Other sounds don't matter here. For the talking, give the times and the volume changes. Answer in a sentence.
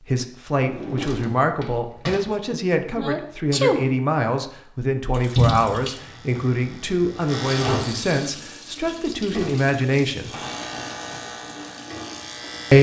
The talking can be heard from 0.1 to 10.3 s, at a steady volume.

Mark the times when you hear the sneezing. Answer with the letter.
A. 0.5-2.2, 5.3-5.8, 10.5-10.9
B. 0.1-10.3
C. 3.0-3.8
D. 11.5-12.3
C.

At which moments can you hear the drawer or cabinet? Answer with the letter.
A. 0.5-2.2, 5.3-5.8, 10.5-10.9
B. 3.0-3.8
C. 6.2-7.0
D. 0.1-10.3
A.